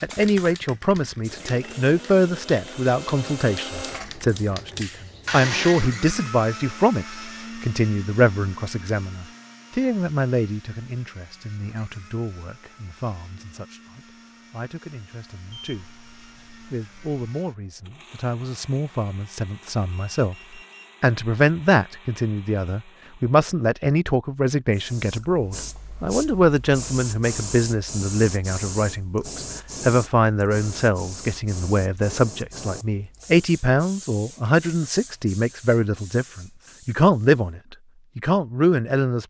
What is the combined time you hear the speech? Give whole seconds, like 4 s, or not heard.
38 s.